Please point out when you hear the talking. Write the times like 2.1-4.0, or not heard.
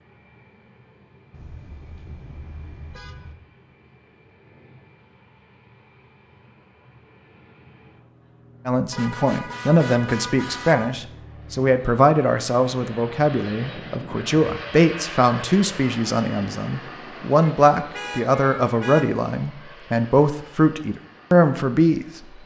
8.7-22.4.